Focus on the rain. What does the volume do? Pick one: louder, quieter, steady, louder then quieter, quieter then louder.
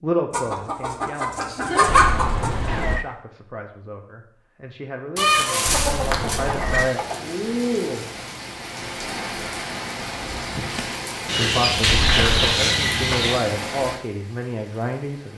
quieter.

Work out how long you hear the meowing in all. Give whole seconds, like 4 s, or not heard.
3 s.